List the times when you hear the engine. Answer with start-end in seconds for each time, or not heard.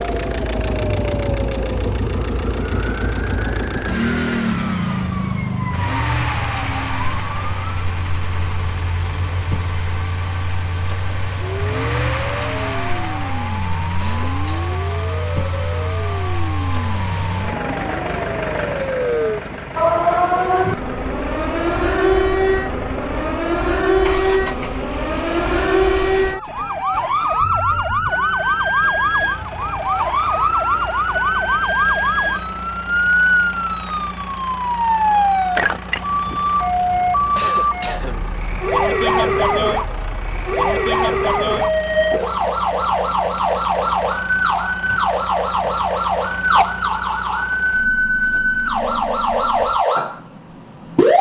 0.0-49.9.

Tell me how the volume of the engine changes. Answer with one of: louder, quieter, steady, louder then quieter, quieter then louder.
quieter.